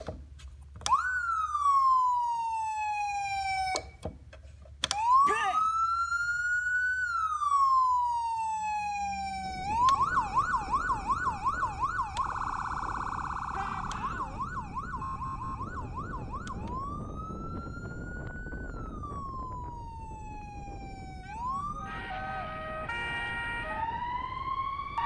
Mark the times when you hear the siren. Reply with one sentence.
You can hear the siren from 0.0 to 25.0 s.